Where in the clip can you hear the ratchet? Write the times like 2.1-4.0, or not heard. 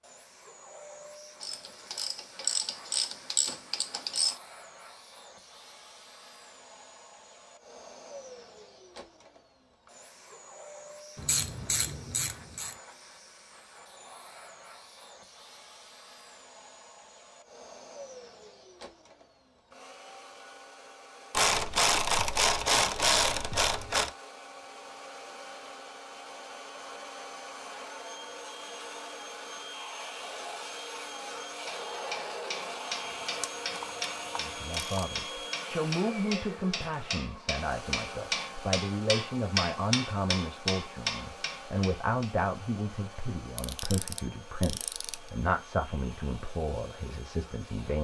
1.4-4.3, 11.2-12.8, 21.3-24.1, 33.4-35.0, 43.5-45.1.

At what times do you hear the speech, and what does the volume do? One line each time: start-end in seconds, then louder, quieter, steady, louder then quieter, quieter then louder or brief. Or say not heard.
34.4-47.9 steady.